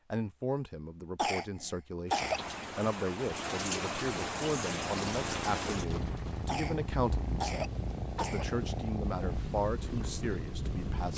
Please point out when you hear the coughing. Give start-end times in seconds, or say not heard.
1.1-2.4, 6.5-8.4.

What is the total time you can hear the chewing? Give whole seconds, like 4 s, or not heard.
not heard.